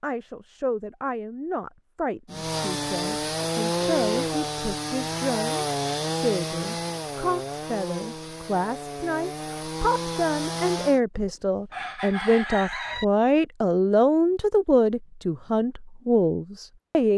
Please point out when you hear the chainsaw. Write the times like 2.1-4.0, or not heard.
2.3-11.0.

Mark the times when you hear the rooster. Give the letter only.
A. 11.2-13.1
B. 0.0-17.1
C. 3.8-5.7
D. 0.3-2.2
A.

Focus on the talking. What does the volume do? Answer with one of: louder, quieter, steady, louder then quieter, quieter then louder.
louder.